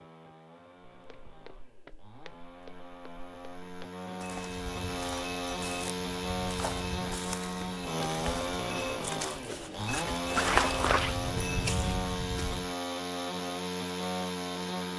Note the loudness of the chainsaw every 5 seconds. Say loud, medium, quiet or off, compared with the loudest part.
medium, loud, loud.